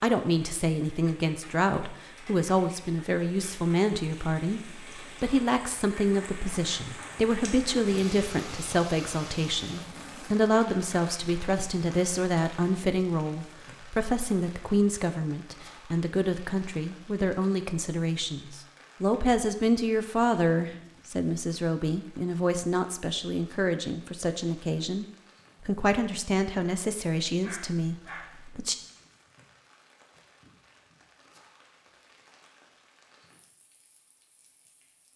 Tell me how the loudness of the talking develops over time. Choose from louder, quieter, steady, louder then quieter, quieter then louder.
steady.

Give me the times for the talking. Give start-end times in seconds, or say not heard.
0.0-28.8.